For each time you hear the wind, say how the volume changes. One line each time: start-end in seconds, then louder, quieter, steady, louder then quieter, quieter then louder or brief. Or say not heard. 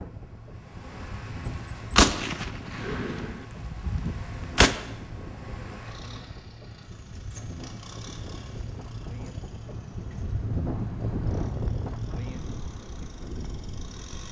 0.0-14.2 louder.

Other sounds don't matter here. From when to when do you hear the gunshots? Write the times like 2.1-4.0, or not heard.
1.4-4.8.